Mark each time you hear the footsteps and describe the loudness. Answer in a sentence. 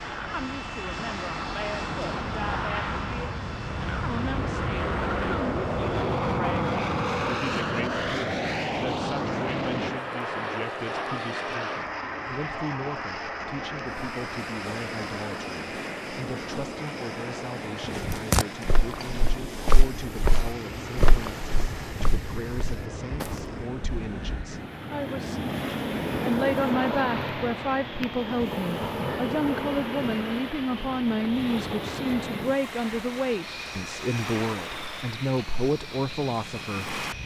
The footsteps can be heard from 17.8 to 23.4 s, getting quieter.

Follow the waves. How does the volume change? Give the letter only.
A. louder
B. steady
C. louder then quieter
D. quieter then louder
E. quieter
C.